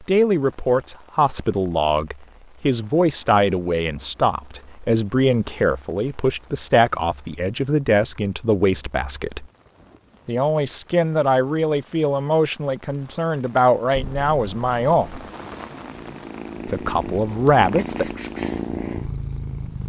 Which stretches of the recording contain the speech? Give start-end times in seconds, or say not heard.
0.0-9.4, 10.2-15.2, 16.6-18.1.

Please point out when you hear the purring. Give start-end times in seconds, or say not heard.
13.9-19.8.